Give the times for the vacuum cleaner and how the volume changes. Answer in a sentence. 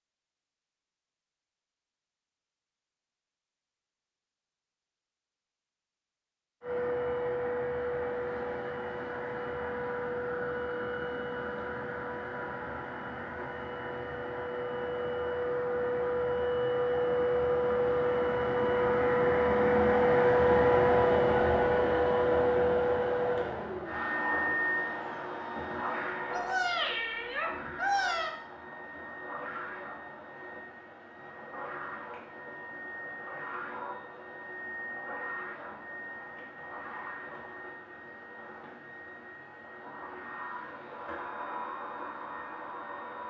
The vacuum cleaner can be heard from 6.6 to 43.2 s, getting louder then quieter.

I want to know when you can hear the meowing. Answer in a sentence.
You can hear the meowing from 26.3 to 28.3 s.